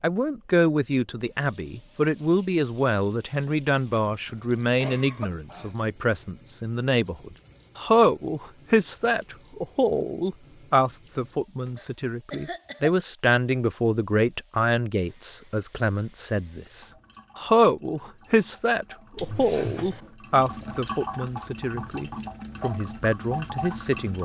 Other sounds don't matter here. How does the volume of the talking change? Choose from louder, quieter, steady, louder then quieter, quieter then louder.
steady.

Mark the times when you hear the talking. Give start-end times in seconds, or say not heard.
0.0-24.1.